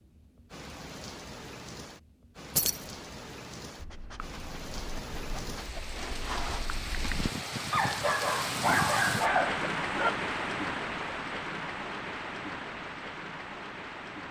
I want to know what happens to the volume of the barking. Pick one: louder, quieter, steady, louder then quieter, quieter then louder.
louder.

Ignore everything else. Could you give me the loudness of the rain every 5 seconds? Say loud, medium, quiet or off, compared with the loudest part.
medium, loud, loud.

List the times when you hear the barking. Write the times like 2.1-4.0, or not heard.
3.8-10.2.